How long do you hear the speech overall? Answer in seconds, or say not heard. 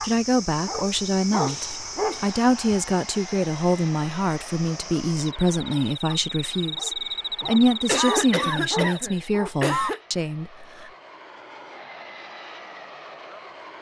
11 s.